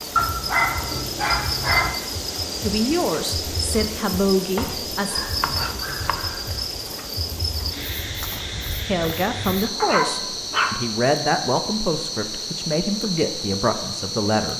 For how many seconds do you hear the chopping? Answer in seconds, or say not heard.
2 s.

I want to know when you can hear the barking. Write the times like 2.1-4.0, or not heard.
0.1-2.0, 5.1-6.7, 9.8-10.8.